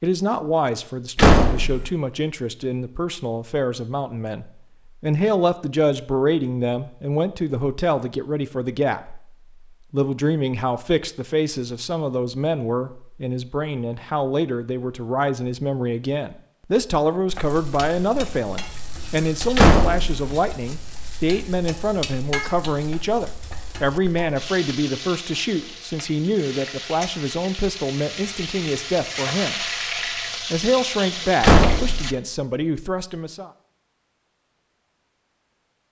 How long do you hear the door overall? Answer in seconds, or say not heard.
2 s.